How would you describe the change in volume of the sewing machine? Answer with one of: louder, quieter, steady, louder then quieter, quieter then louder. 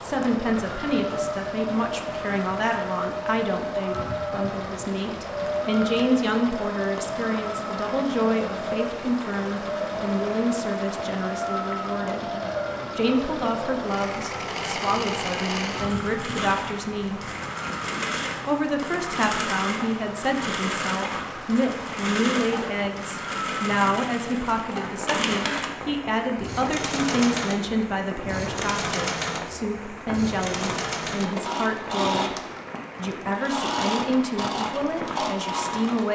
steady.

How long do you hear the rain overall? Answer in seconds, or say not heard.
36 s.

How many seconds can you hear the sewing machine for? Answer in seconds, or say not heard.
36 s.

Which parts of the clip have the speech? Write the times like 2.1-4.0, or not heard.
0.0-12.3, 12.9-17.2, 18.4-32.4, 33.0-36.1.